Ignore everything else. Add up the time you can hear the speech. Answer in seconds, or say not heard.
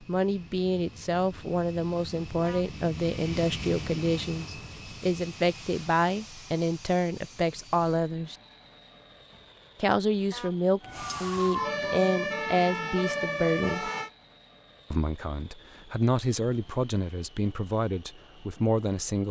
17 s.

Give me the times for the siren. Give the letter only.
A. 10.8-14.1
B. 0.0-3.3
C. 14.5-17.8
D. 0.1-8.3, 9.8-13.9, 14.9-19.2
A.